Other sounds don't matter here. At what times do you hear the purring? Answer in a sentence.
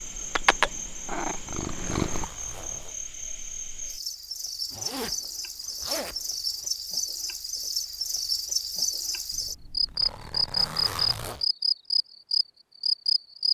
You can hear the purring from 0.1 to 2.2 s.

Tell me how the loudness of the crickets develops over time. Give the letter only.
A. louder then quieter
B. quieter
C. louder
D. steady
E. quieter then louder
C.